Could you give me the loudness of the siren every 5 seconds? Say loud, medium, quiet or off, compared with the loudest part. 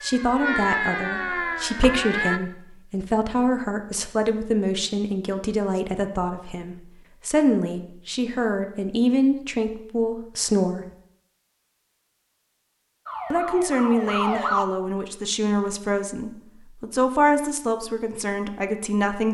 loud, off, loud, off.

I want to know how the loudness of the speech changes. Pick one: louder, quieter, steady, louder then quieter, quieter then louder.
steady.